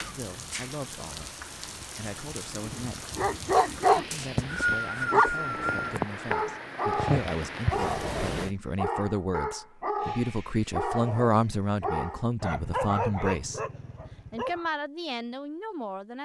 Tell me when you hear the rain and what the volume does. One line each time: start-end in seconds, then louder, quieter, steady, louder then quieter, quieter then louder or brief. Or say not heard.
0.0-8.6 louder.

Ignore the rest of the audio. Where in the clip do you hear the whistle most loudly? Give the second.
5 s.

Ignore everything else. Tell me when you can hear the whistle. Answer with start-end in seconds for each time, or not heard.
4.1-6.0.